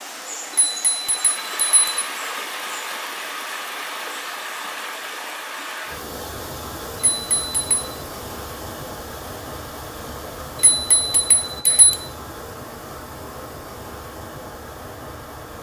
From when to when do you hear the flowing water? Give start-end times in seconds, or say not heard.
0.0-15.5.